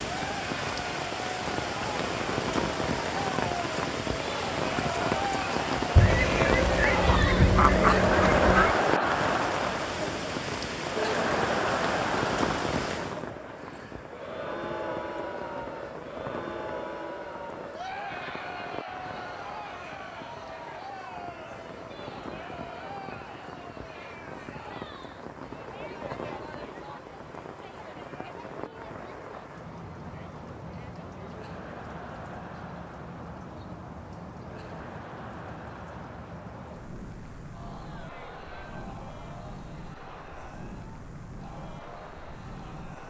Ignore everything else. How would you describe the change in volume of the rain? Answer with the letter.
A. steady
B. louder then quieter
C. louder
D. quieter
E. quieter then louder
D.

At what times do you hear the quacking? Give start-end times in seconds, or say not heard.
6.0-8.8.